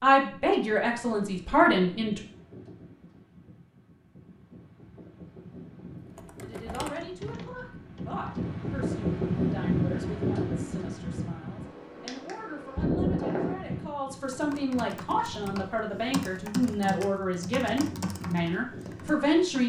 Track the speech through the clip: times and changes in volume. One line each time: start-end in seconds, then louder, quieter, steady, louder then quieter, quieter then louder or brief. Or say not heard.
0.0-2.2 brief
6.4-19.6 louder.